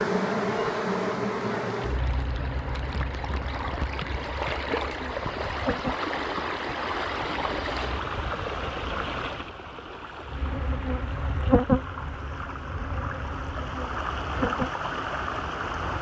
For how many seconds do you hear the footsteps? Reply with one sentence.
The footsteps can't be heard in this clip.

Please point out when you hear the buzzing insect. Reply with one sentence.
The buzzing insect can be heard from 0.0 to 8.0 s and from 10.2 to 15.9 s.